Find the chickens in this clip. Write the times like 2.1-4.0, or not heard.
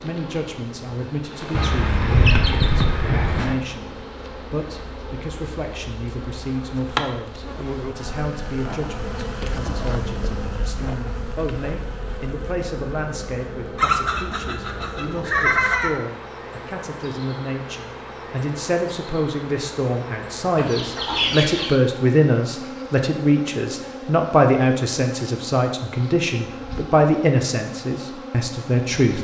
1.5-3.5, 13.8-16.0, 20.6-21.8.